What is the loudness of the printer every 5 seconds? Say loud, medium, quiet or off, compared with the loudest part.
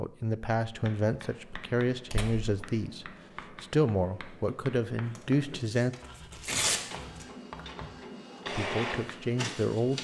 off, loud.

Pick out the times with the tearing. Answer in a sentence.
The tearing can be heard from 2.1 to 2.6 s and from 5.2 to 7.2 s.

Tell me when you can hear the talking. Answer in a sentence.
You can hear the talking from 0.0 to 6.0 s and from 8.6 to 10.0 s.